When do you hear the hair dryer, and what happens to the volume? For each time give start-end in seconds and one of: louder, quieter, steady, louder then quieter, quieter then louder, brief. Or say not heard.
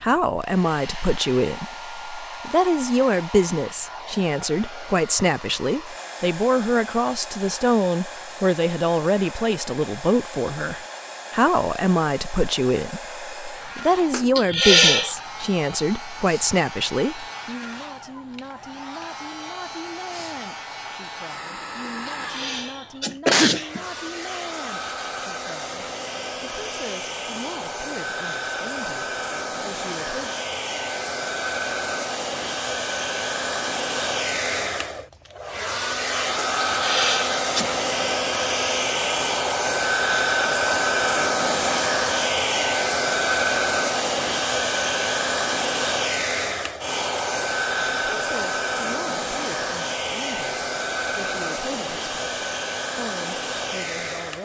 0.1-54.4 louder.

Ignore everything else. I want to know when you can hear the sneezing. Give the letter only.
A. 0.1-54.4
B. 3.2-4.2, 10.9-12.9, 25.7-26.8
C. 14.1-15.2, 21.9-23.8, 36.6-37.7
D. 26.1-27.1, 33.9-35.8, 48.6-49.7
C.